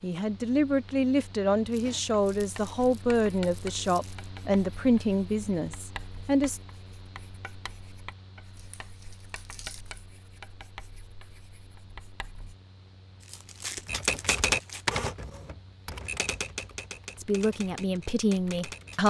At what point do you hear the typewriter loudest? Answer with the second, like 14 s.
14 s.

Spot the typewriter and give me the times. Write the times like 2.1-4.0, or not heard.
13.8-19.0.